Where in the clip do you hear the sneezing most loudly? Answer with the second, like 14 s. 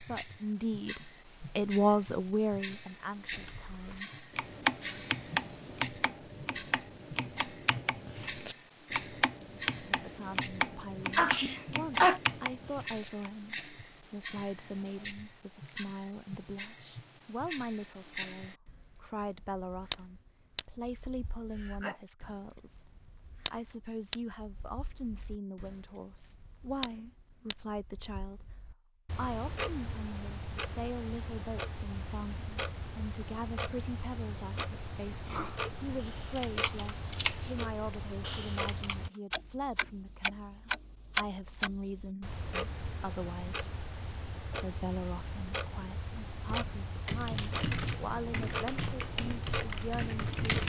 12 s.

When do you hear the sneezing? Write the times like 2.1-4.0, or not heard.
11.2-12.2, 21.2-21.9, 35.1-35.5.